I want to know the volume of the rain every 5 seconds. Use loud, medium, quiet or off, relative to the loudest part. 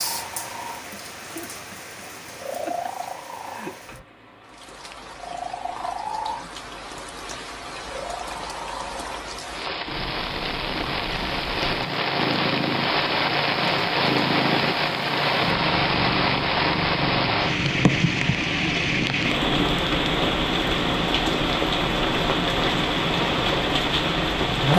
quiet, quiet, loud, loud, loud.